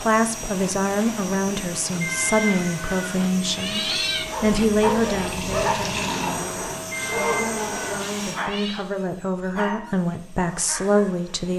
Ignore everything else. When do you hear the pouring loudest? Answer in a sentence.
The volume of the pouring peaks at 6 seconds.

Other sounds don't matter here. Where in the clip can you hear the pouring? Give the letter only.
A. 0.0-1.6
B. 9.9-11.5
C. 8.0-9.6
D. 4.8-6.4
D.